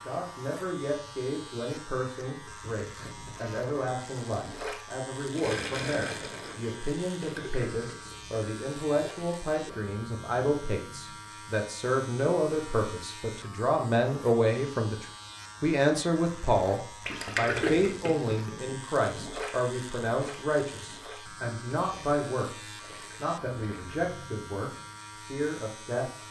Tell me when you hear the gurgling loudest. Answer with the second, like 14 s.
18 s.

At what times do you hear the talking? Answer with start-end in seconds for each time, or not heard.
0.0-26.2.